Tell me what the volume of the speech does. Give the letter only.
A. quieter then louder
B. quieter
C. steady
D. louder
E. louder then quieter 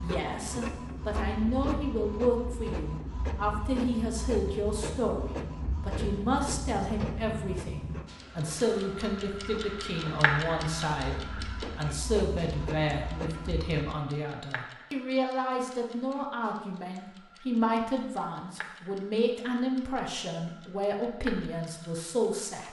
C.